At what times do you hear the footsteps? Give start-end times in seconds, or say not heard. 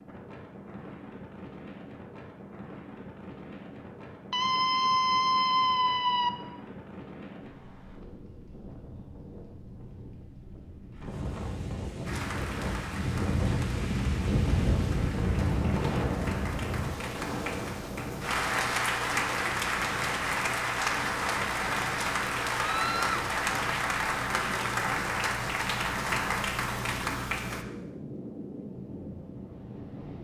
not heard.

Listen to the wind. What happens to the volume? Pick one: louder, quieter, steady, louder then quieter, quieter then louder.
louder then quieter.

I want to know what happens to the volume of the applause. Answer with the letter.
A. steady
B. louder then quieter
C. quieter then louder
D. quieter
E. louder
E.